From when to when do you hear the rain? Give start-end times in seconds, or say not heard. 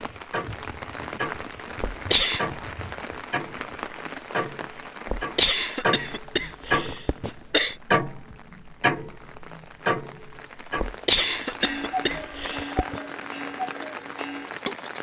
0.0-14.9.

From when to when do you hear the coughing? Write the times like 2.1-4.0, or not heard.
1.8-2.5, 5.0-7.8, 10.8-13.0.